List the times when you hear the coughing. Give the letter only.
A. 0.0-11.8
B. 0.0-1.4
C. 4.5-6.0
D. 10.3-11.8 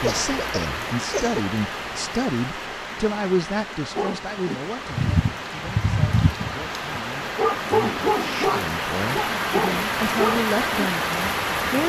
B.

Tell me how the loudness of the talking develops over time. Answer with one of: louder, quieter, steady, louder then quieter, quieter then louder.
quieter then louder.